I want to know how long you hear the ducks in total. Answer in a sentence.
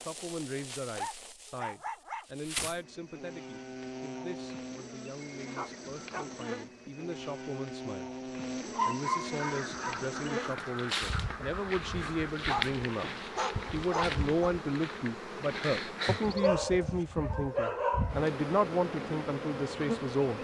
The ducks can be heard for 3 seconds in total.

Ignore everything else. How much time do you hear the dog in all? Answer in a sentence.
The dog can be heard for 7 seconds in total.